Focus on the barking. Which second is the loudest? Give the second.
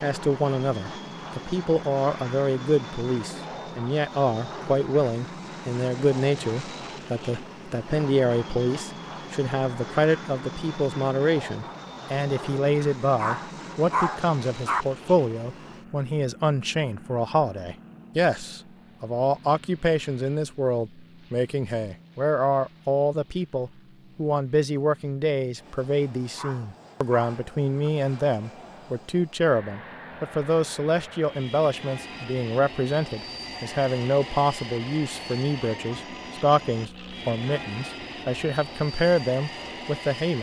14 s.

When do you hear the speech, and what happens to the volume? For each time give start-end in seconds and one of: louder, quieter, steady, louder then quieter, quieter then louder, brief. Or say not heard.
0.0-40.3 steady.